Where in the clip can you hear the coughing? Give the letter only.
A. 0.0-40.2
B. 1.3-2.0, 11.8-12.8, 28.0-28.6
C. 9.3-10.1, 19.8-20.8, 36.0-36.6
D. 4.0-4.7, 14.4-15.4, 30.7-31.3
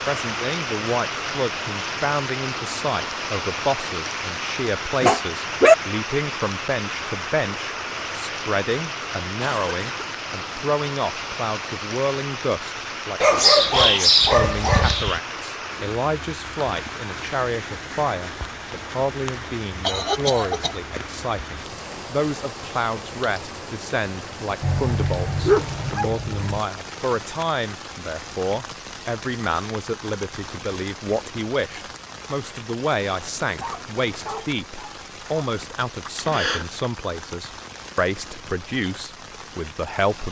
C.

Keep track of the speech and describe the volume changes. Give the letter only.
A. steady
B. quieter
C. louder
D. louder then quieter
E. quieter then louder
A.